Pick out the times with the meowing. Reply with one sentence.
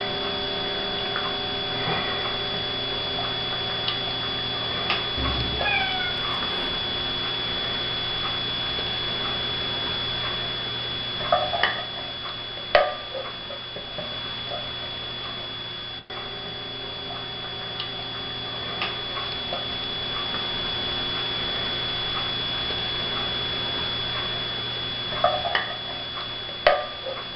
The meowing can be heard from 5.2 to 6.8 s.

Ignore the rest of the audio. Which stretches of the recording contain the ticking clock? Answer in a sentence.
The ticking clock can be heard from 0.0 to 27.3 s.